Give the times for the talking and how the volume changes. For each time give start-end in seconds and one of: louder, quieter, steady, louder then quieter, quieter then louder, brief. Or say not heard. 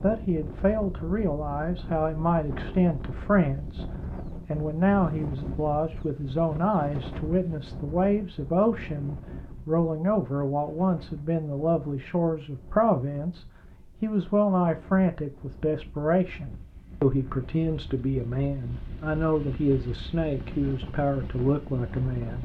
0.0-22.4 steady.